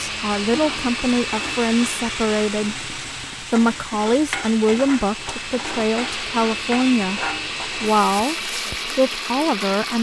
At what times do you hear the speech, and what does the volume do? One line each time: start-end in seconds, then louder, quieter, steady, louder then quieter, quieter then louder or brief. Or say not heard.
0.0-9.9 steady.